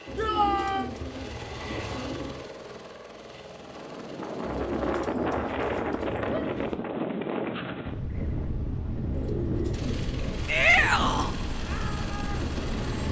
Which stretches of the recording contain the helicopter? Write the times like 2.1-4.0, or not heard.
0.0-5.0, 9.7-13.0.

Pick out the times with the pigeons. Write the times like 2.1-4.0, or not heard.
0.1-2.4, 4.4-6.8, 9.1-11.2.